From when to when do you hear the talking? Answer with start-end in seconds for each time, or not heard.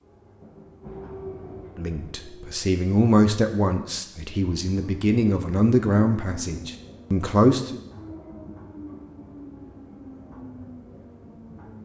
1.8-7.8.